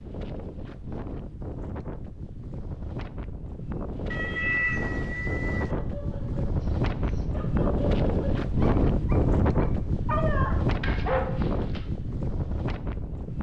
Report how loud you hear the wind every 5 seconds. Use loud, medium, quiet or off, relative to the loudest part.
medium, loud, loud.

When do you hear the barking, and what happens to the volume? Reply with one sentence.
You can hear the barking from 5.6 to 11.8 s, getting louder.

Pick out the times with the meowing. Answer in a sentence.
The meowing can be heard from 4.1 to 5.8 s.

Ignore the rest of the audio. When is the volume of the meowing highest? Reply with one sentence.
The volume of the meowing peaks at 5 seconds.